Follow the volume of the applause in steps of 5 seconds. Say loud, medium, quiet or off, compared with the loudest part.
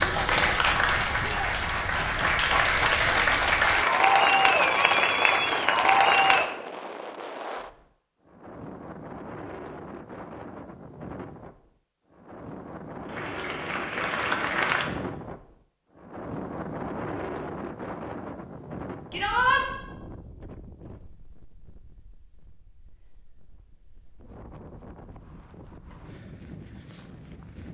loud, loud, medium, off, off, off.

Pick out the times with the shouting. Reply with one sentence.
You can hear the shouting from 1.1 to 1.6 s and from 19.1 to 19.6 s.